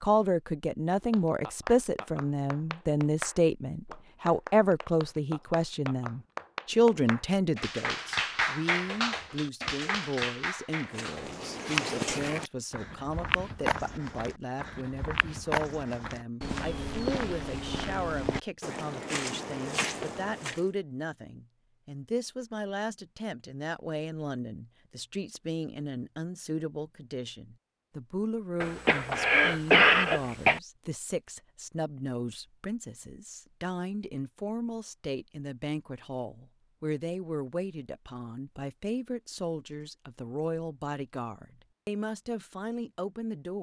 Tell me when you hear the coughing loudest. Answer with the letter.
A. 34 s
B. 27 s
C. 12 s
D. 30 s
D.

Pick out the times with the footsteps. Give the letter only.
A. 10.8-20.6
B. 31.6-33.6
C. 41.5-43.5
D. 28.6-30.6
A.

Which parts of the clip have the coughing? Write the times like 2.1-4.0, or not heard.
28.6-30.6.